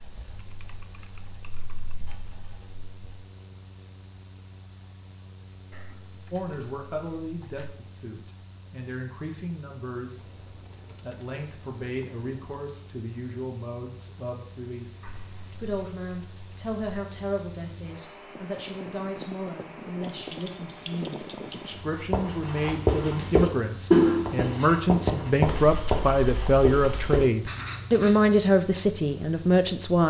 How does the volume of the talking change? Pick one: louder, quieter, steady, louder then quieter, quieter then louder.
louder.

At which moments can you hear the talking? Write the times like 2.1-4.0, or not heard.
6.3-10.4, 11.0-14.9, 15.6-30.0.